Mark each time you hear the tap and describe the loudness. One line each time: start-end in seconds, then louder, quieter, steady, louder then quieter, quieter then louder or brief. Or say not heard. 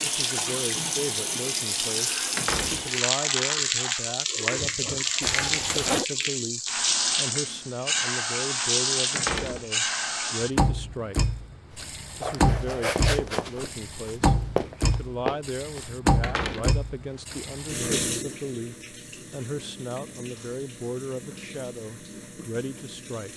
0.0-23.3 quieter.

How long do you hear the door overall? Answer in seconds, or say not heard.
4 s.